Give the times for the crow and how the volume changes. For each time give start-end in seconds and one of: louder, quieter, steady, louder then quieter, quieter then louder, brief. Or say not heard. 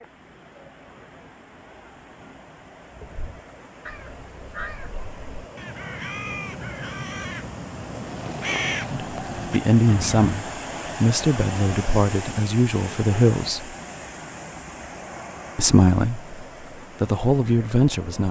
2.9-10.3 louder.